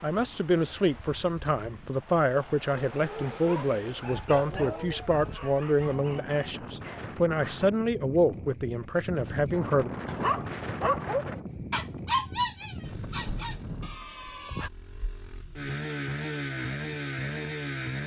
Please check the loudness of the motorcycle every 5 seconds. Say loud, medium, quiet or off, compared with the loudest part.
off, off, quiet, loud.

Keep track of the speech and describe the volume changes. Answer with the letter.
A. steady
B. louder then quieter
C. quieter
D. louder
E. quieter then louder
A.